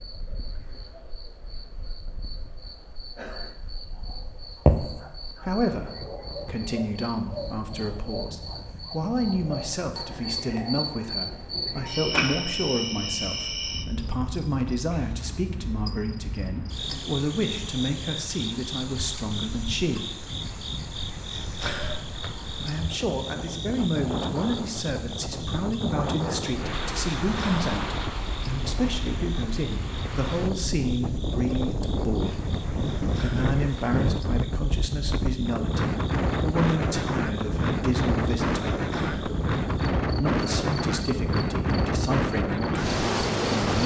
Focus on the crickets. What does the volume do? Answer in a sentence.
The loudness of the crickets goes down.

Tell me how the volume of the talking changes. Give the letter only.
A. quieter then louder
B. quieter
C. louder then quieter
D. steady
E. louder
D.